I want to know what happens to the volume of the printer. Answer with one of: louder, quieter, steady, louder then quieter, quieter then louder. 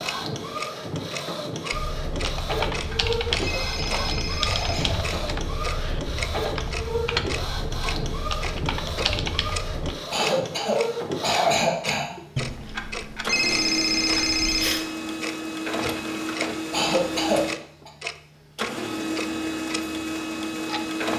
steady.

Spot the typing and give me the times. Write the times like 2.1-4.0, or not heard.
1.7-9.9.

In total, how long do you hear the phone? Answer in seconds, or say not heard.
5 s.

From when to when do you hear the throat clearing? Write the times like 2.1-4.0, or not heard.
3.3-5.4, 10.1-12.2, 16.7-17.9.